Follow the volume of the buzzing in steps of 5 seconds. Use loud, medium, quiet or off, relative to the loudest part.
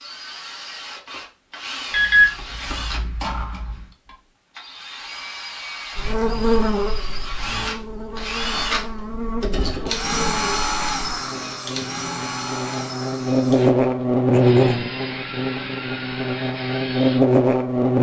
off, medium, loud, loud.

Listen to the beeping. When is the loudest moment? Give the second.
2 s.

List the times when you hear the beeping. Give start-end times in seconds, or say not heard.
1.9-3.9.